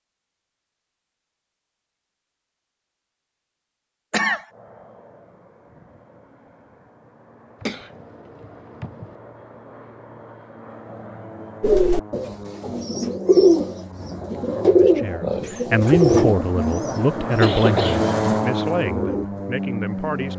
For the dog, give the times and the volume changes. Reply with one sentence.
You can't hear the dog here.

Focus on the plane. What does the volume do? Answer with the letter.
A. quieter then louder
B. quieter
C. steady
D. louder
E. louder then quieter
D.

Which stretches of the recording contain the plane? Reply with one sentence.
You can hear the plane from 4.5 to 20.3 s.